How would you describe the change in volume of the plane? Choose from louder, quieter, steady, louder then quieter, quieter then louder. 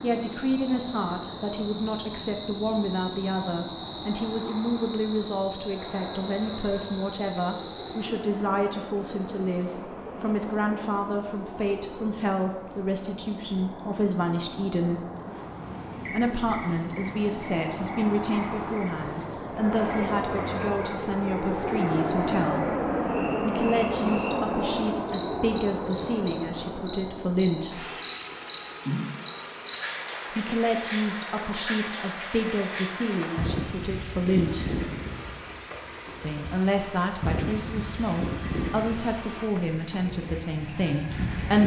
louder then quieter.